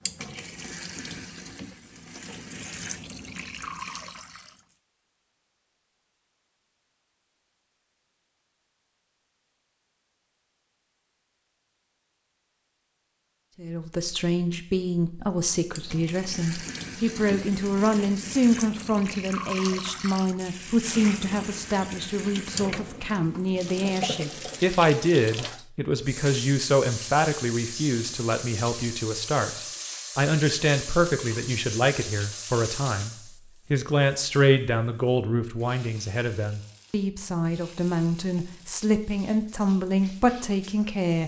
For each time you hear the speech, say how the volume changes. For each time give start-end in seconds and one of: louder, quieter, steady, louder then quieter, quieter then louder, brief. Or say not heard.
13.6-41.2 steady.